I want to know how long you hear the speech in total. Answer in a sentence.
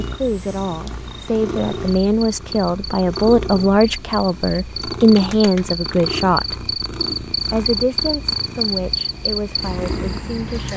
You can hear the speech for 11 seconds altogether.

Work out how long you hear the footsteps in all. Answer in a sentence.
You can't hear the footsteps here.